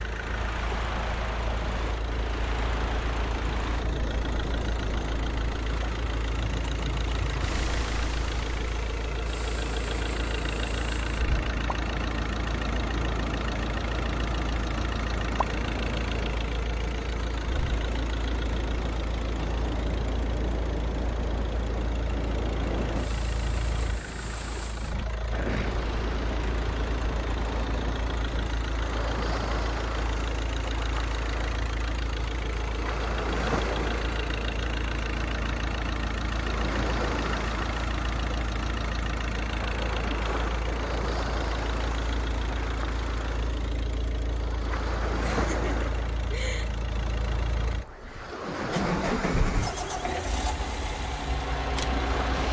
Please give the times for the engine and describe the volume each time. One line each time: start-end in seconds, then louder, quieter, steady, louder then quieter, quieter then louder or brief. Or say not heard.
0.0-52.4 steady.